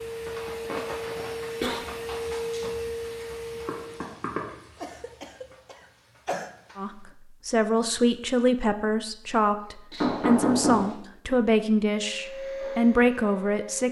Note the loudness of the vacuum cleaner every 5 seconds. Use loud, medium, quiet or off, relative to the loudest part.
loud, off, loud.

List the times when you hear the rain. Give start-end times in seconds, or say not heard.
0.0-7.2.